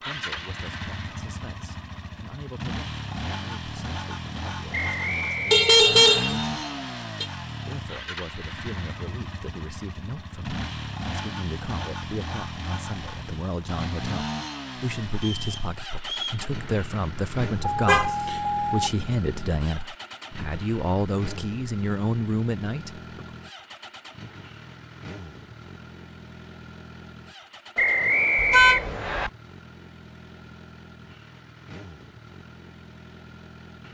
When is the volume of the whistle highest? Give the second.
28 s.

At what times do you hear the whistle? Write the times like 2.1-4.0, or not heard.
4.7-6.2, 15.2-16.4, 27.8-29.3.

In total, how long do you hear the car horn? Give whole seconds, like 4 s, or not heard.
4 s.